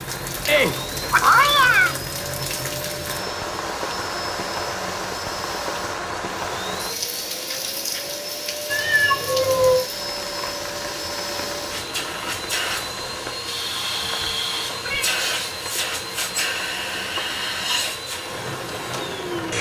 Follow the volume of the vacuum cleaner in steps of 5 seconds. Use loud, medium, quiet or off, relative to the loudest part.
medium, medium, loud, loud.